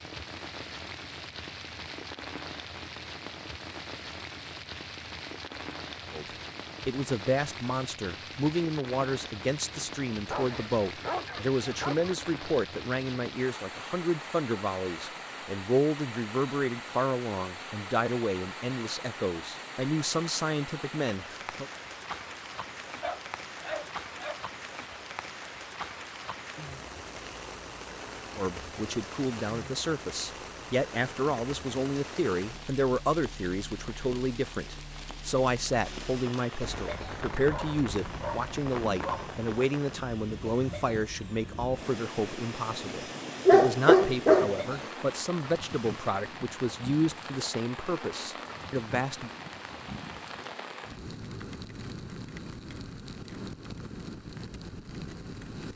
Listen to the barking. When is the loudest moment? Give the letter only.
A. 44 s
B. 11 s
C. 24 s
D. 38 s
A.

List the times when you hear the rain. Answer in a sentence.
The rain can be heard from 0.0 to 55.7 s.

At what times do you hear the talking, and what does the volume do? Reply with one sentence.
You can hear the talking from 6.1 to 21.6 s, at a steady volume; and from 28.4 to 49.3 s, at a steady volume.